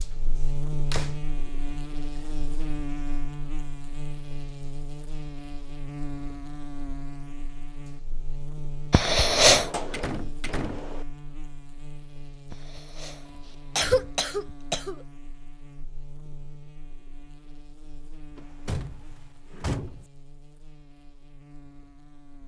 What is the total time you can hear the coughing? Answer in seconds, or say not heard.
3 s.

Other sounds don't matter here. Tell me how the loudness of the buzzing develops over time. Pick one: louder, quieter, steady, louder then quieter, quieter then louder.
quieter.